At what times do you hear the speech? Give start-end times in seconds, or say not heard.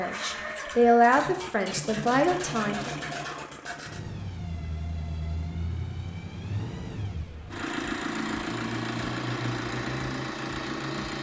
0.0-2.9.